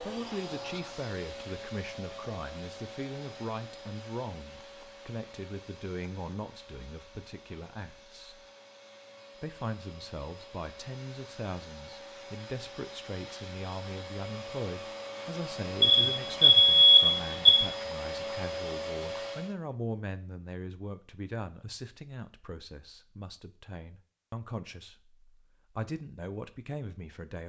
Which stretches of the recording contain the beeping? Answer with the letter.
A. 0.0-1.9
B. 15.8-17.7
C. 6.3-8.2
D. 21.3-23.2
B.